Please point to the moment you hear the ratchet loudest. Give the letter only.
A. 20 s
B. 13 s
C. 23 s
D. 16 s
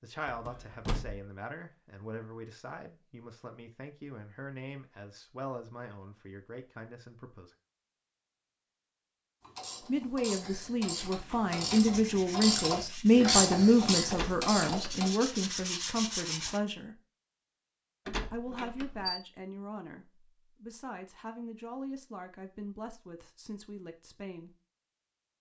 B.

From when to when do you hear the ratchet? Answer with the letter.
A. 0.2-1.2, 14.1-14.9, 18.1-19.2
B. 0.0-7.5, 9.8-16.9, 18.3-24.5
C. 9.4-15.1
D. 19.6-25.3
C.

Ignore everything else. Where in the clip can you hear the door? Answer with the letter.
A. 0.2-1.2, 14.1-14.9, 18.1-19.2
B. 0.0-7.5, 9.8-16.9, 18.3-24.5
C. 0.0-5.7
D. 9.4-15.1
A.